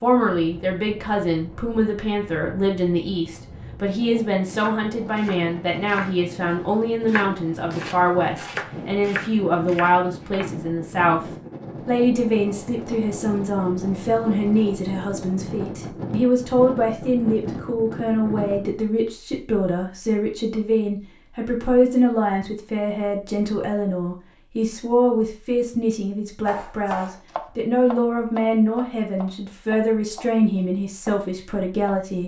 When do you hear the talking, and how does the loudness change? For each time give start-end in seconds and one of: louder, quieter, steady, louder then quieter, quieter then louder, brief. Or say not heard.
0.0-11.2 steady
11.8-32.2 steady.